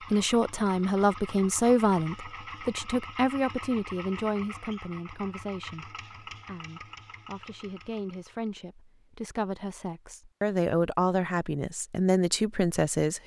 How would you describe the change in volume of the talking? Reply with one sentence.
The loudness of the talking goes down, then up.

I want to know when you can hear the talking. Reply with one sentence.
The talking can be heard from 0.1 to 13.2 s.